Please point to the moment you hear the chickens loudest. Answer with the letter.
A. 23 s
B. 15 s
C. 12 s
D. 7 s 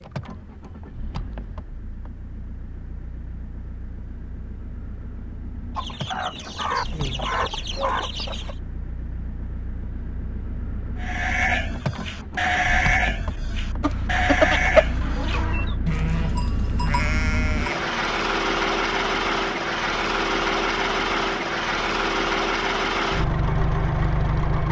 B.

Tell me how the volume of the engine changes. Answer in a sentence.
The loudness of the engine goes up.